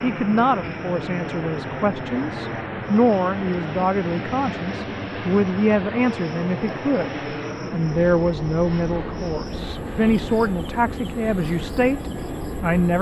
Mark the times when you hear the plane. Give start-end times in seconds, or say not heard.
0.0-12.9.